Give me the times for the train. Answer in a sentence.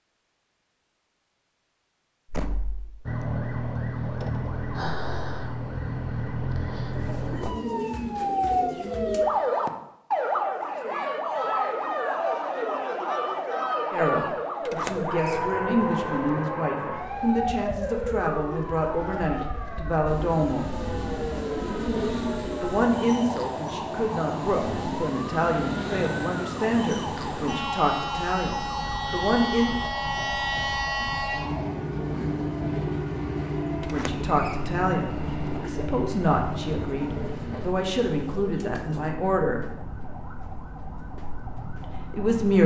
You can hear the train from 20.1 to 37.7 s.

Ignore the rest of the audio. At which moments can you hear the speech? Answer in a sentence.
You can hear the speech from 13.9 to 20.8 s, from 22.6 to 29.8 s, from 33.8 to 39.8 s and from 41.8 to 42.6 s.